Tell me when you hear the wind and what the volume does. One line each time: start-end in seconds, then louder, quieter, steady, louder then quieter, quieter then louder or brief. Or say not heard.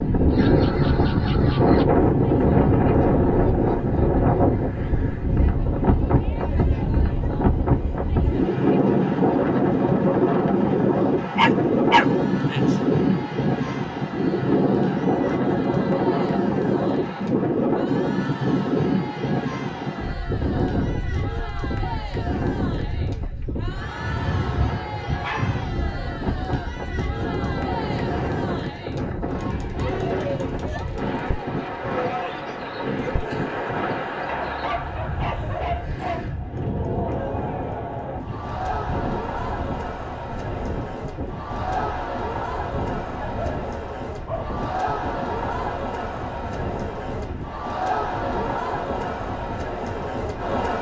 0.0-50.5 quieter.